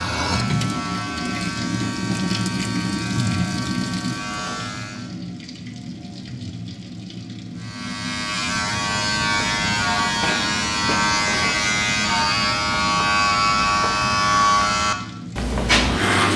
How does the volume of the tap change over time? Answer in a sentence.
The volume of the tap goes down.